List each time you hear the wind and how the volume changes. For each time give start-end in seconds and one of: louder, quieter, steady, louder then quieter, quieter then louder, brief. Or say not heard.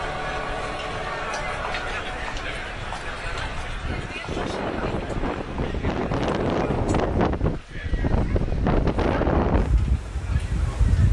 0.1-11.0 louder.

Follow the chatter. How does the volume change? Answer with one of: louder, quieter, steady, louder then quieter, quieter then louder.
quieter.